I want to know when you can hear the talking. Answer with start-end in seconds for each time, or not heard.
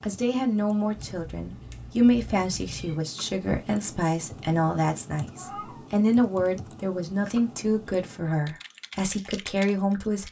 0.0-10.2.